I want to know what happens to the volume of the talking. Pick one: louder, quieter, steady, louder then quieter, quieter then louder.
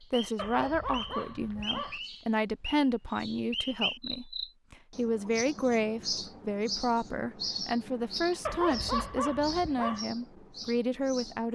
steady.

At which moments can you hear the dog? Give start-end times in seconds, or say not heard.
0.3-2.0, 8.4-10.1.